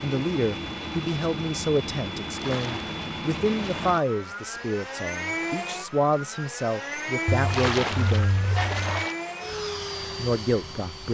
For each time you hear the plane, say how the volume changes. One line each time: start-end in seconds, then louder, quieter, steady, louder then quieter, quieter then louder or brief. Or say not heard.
0.0-11.0 steady.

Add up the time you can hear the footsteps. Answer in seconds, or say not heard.
not heard.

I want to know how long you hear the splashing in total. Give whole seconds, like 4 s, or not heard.
3 s.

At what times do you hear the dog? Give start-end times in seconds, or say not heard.
7.2-9.1.